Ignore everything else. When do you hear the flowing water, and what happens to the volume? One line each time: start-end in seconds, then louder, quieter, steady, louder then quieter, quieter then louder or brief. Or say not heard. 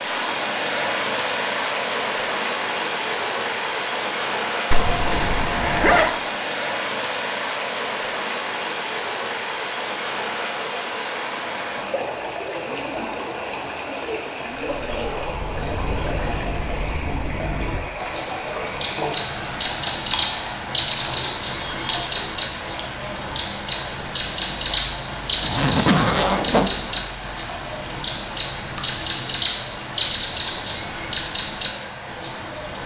0.0-32.8 quieter.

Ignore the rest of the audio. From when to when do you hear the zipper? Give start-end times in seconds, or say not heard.
4.7-6.2, 25.4-26.7.